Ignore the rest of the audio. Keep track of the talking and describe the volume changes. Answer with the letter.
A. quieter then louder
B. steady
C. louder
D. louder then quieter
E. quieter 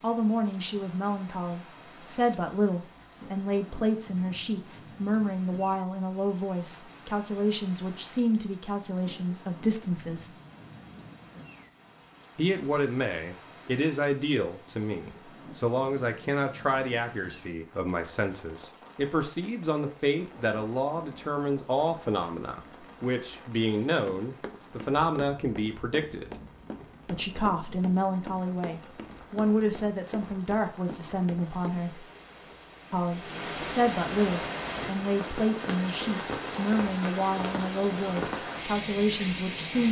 B.